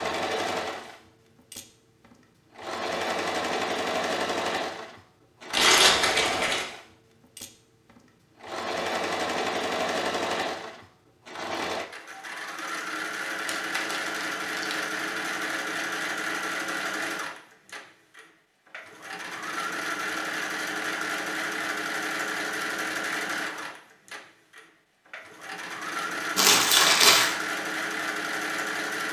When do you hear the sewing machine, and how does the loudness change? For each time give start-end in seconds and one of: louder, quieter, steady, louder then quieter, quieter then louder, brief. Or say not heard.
0.0-29.0 steady.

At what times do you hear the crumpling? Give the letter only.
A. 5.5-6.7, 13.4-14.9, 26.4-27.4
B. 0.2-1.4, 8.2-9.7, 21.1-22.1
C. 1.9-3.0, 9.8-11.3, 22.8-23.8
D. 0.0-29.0
A.